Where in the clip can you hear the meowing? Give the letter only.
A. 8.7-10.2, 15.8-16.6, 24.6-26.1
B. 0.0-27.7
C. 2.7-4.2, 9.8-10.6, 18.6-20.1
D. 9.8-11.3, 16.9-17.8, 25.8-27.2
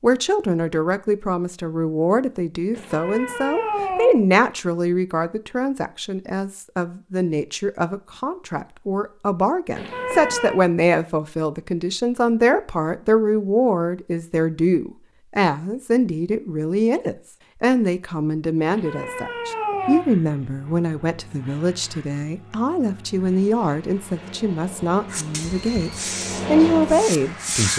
C.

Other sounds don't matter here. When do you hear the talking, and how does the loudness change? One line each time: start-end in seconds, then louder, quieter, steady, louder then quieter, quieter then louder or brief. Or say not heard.
0.0-27.7 steady.